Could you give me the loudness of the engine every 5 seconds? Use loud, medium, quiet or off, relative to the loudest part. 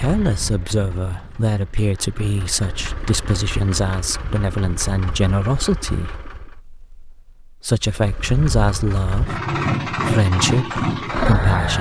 quiet, medium, loud.